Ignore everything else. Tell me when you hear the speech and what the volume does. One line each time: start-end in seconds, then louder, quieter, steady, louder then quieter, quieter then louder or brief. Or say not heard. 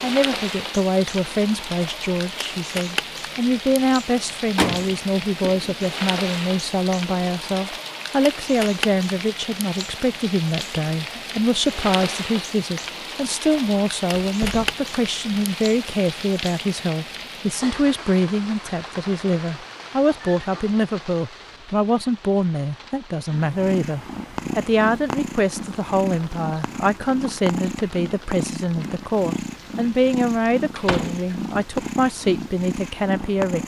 0.0-33.6 steady.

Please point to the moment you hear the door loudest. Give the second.
5 s.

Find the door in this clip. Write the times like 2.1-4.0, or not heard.
4.1-5.9, 14.2-14.8, 30.8-31.4.